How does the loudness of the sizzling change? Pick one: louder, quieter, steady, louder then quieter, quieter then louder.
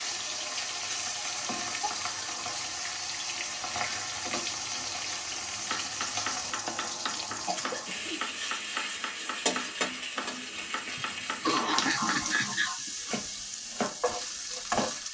steady.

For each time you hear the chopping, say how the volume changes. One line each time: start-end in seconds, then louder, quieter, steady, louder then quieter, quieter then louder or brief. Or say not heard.
5.5-15.0 steady.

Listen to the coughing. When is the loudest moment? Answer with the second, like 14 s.
12 s.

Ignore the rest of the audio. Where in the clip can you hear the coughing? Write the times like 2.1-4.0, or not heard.
1.8-2.5, 7.5-8.3, 10.9-12.9.